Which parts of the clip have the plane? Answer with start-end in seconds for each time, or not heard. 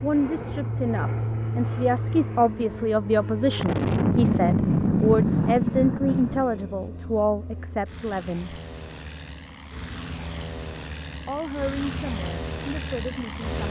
0.0-13.6.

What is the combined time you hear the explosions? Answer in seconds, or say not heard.
3 s.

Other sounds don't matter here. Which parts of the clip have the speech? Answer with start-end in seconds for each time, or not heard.
0.0-8.6, 11.2-13.6.